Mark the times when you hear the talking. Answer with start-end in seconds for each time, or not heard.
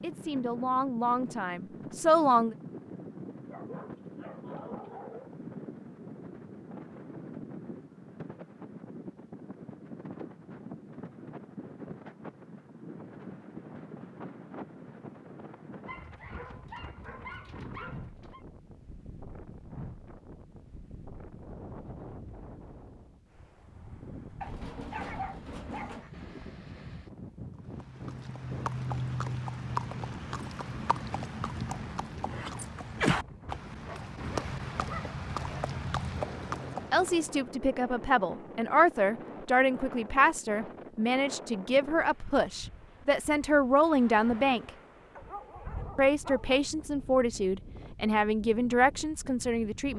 0.0-2.5, 36.9-44.7, 46.0-49.9.